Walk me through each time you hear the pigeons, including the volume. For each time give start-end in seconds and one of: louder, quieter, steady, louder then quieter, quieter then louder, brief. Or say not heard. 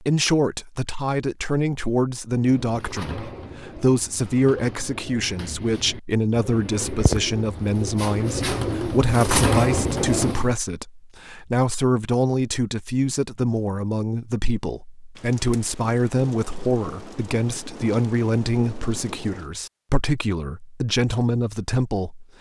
2.4-10.6 louder.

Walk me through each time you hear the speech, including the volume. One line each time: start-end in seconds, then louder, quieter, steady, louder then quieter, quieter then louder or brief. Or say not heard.
0.0-22.2 steady.